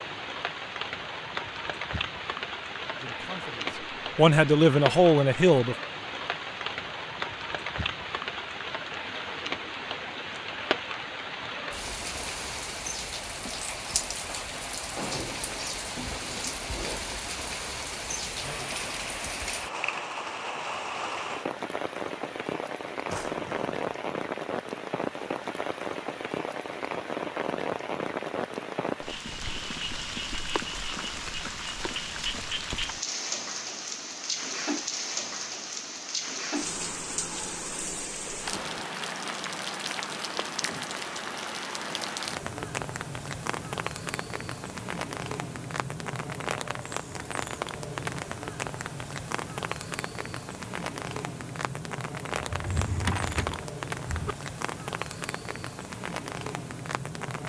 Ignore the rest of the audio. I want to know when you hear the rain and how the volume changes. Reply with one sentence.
You can hear the rain from 0.0 to 57.4 s, at a steady volume.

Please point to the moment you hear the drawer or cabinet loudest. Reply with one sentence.
The loudest moment of the drawer or cabinet is at 53 seconds.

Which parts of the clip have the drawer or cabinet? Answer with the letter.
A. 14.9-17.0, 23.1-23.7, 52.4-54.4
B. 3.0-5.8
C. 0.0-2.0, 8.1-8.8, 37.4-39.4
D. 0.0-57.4
A.